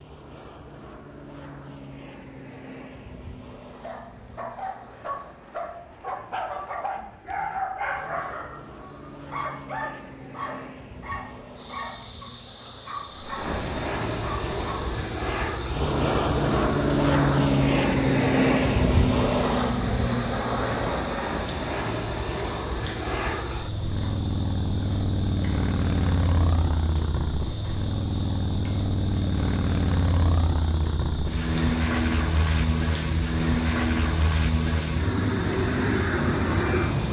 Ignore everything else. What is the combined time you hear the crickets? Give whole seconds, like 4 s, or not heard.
37 s.